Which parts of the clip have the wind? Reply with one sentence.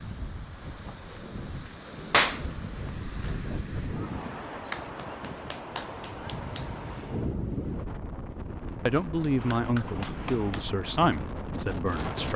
The wind can be heard from 0.0 to 12.3 s.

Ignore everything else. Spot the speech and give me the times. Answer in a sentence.
You can hear the speech from 8.8 to 12.3 s.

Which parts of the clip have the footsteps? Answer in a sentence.
You can't hear the footsteps here.